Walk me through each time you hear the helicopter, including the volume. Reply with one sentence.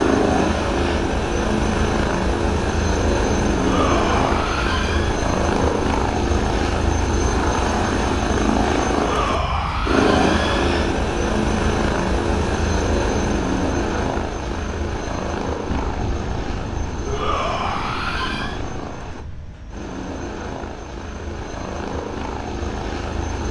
You can hear the helicopter from 0.0 to 23.4 s, getting quieter.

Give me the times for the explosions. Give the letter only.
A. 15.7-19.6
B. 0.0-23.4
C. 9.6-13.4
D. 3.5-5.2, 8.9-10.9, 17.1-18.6
A.